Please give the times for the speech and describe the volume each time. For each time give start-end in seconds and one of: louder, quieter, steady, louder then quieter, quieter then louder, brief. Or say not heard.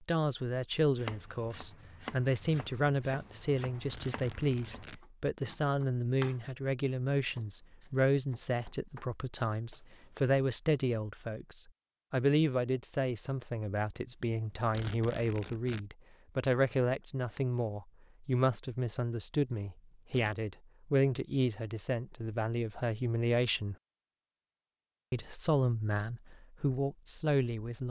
0.1-23.8 steady
25.1-27.8 brief.